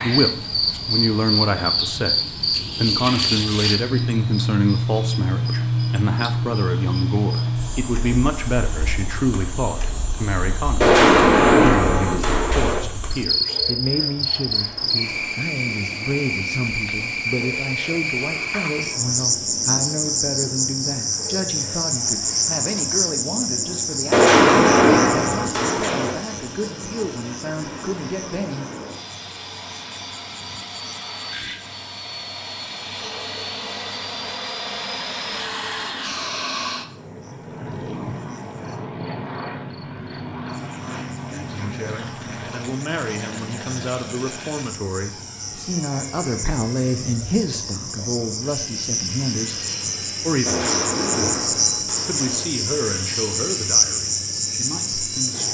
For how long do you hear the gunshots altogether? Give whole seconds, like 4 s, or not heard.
6 s.